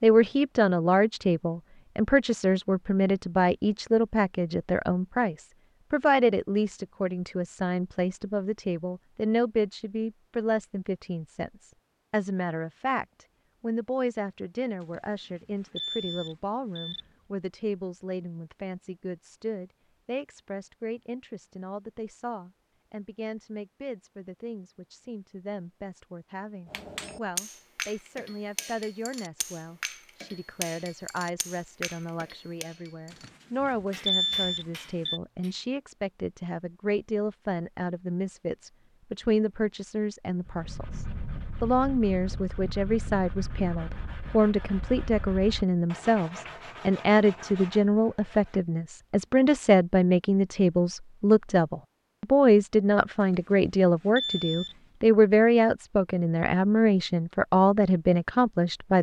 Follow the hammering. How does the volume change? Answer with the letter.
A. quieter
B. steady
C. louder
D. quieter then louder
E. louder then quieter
A.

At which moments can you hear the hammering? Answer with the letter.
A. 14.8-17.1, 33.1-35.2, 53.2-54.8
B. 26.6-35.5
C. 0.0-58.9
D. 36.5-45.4
B.